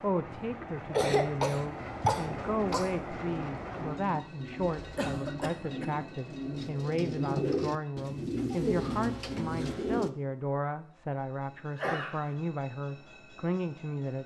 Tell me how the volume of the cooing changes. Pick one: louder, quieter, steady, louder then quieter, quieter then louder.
louder.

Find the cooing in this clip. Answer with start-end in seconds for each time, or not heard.
1.8-10.1.